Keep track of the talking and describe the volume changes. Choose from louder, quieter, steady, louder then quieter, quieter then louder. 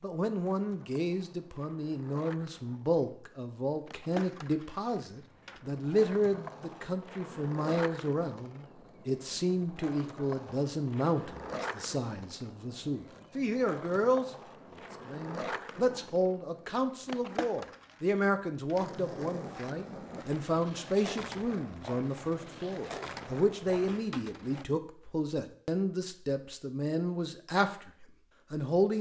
steady.